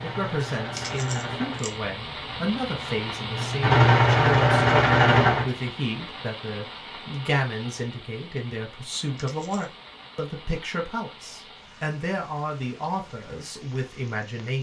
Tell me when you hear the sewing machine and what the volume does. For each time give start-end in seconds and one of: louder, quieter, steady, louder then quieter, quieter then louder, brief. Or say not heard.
0.0-5.5 quieter then louder.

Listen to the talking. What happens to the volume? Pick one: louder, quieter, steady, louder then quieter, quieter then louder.
steady.